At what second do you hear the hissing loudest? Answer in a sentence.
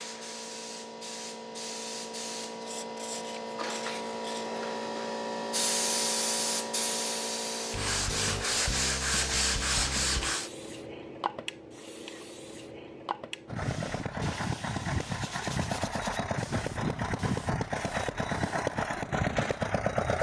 The volume of the hissing peaks at 6 seconds.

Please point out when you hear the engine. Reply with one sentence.
You can hear the engine from 13.4 to 20.1 s.